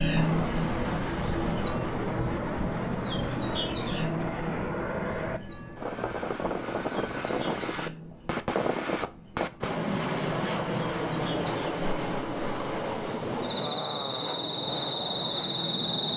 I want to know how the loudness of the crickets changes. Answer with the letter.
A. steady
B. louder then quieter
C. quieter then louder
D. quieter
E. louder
C.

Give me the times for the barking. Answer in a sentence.
The barking can't be heard in this clip.